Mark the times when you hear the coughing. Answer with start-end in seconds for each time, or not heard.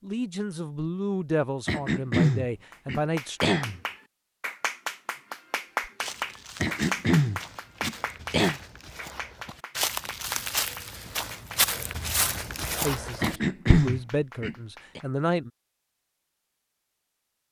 1.6-3.8, 6.6-8.6, 13.2-15.0.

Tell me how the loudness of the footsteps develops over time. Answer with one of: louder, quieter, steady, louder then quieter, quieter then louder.
louder.